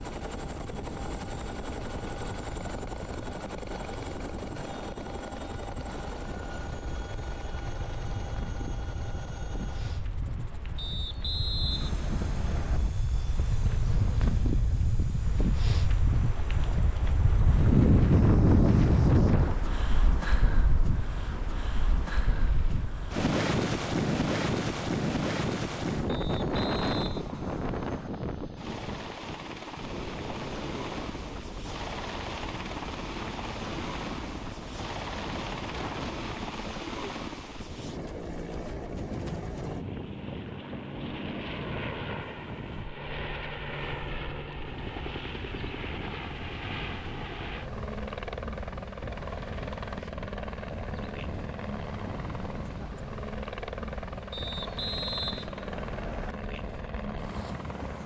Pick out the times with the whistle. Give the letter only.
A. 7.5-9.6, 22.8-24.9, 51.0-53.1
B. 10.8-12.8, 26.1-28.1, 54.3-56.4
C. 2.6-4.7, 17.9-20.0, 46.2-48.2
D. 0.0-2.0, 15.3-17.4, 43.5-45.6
B.